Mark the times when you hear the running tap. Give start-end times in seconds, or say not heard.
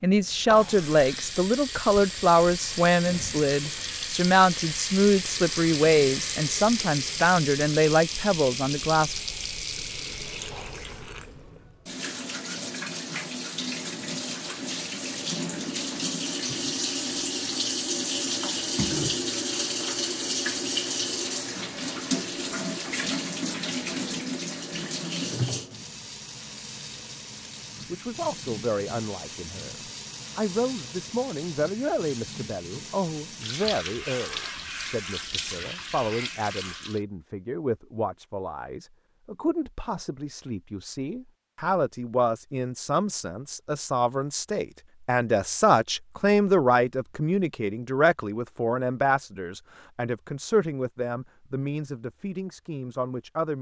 0.1-37.0.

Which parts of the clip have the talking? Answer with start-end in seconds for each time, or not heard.
0.0-9.2, 27.9-29.8, 30.4-53.5.